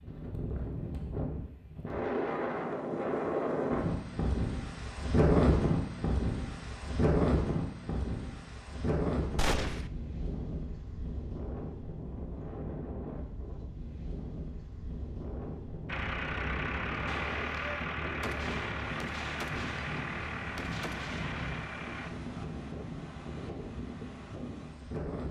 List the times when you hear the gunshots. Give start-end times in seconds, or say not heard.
9.3-9.9, 17.1-21.7.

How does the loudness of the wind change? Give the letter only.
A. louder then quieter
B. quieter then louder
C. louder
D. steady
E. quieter
E.